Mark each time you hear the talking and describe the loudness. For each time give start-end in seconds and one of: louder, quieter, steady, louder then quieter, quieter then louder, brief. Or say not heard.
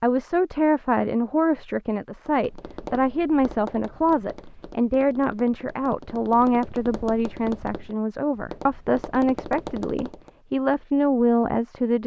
0.0-12.0 steady.